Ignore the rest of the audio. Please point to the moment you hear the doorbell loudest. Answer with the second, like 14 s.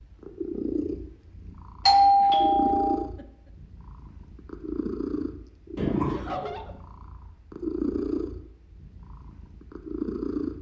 2 s.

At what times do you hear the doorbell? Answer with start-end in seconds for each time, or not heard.
1.9-3.0, 5.8-6.5.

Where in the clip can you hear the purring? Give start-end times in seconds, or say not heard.
0.0-10.5.